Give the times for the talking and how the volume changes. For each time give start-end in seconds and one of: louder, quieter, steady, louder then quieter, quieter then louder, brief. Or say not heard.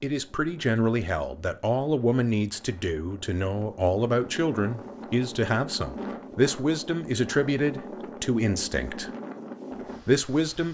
0.0-9.1 steady
10.1-10.6 brief.